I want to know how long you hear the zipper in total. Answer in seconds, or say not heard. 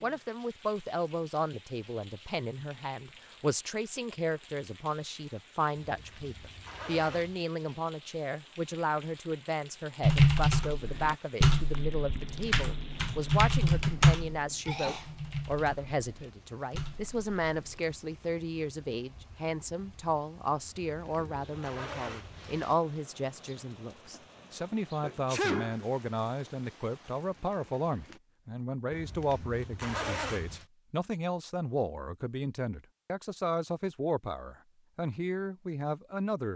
5 s.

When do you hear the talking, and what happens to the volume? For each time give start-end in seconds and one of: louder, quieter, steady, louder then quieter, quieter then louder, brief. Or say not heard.
0.0-36.5 steady.